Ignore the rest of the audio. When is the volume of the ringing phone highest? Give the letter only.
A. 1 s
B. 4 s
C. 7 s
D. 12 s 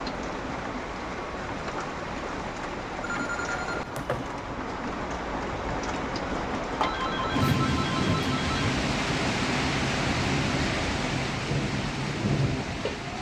C.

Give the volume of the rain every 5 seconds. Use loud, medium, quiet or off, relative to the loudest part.
medium, loud, loud.